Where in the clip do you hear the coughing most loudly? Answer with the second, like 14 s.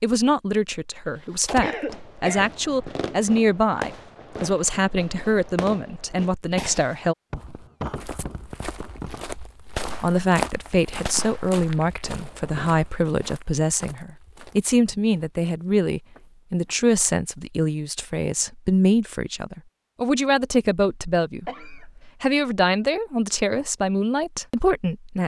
2 s.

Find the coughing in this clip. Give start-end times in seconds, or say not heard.
1.6-2.5, 21.4-22.1.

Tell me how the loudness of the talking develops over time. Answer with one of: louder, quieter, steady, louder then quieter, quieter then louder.
steady.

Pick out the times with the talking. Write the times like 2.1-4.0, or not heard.
0.0-7.2, 10.0-25.2.